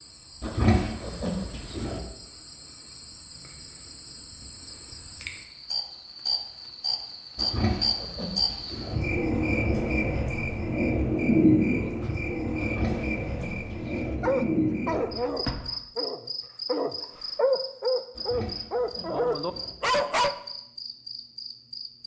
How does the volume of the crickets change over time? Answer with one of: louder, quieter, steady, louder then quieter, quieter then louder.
louder then quieter.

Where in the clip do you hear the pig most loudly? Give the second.
1 s.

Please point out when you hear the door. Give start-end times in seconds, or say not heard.
15.1-15.8.